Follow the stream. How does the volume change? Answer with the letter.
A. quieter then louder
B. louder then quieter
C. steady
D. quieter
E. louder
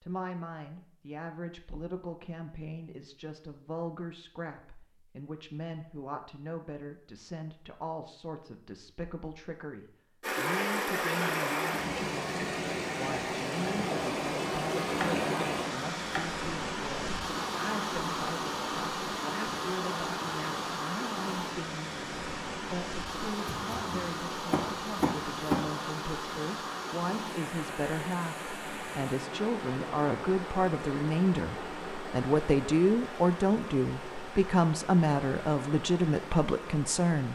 D.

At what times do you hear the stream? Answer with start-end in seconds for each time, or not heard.
10.2-37.3.